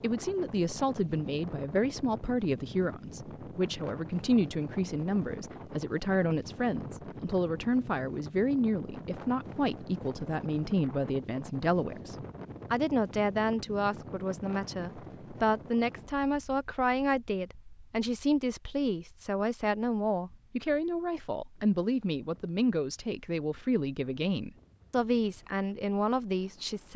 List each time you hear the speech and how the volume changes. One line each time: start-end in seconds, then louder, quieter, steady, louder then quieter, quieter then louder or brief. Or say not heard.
0.0-26.9 steady.